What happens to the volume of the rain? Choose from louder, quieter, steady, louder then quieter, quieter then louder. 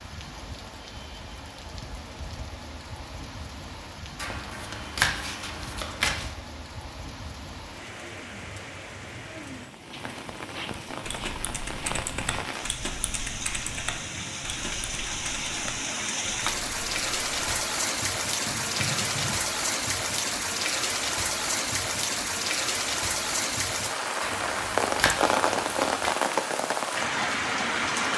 louder.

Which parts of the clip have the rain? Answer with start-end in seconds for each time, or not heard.
0.0-28.1.